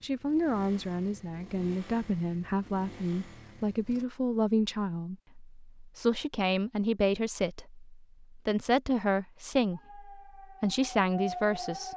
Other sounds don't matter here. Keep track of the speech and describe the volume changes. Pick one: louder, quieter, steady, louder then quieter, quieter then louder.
steady.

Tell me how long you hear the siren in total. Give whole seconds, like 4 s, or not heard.
2 s.